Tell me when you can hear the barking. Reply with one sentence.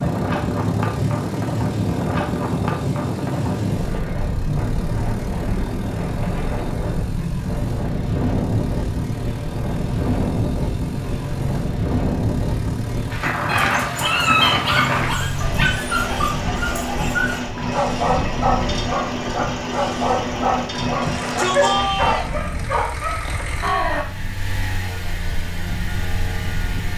The barking can be heard from 13.4 to 24.1 s.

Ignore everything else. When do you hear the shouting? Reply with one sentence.
You can hear the shouting from 21.0 to 22.3 s.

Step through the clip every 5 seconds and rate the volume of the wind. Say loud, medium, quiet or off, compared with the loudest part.
loud, loud, loud, medium, quiet, quiet.